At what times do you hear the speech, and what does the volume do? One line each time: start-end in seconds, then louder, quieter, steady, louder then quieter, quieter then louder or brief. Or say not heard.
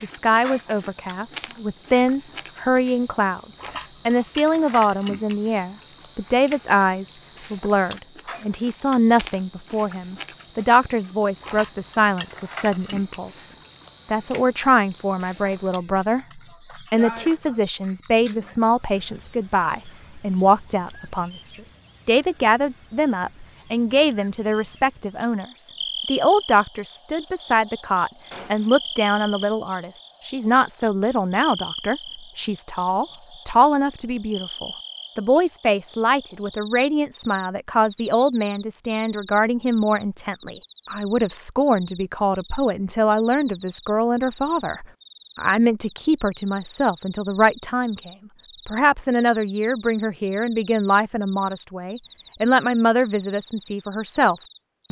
0.0-54.8 steady.